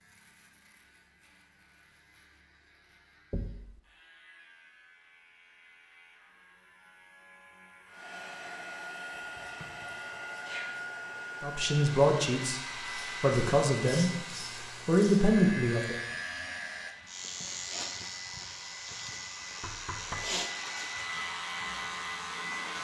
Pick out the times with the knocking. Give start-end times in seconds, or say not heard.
3.3-3.8, 19.6-20.4.